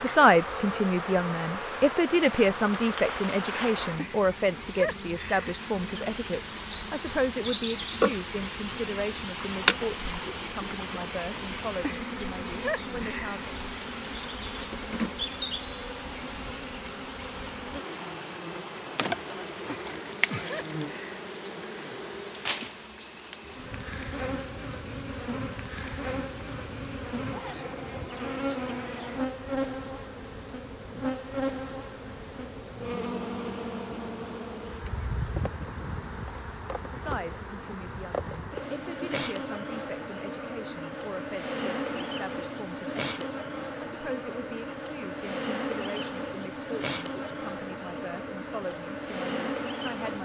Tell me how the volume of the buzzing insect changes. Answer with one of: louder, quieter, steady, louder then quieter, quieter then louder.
steady.